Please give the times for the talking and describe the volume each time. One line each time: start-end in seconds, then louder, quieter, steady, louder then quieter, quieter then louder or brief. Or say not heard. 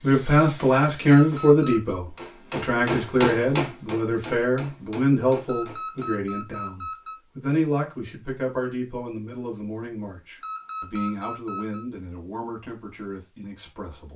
0.0-14.1 quieter.